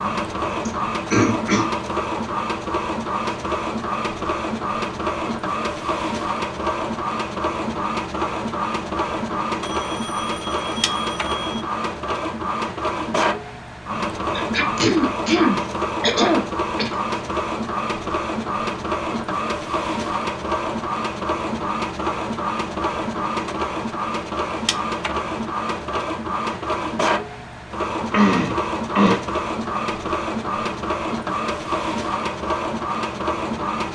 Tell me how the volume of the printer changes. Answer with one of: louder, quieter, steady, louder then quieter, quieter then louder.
steady.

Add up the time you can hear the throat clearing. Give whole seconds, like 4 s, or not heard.
5 s.